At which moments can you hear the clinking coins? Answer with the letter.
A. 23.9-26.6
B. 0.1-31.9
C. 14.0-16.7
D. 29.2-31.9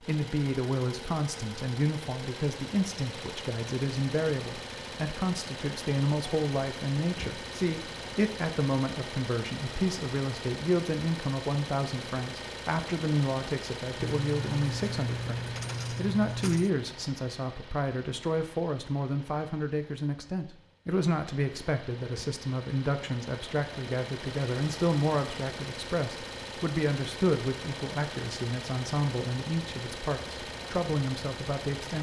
C.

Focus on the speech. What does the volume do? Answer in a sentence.
The loudness of the speech stays about the same.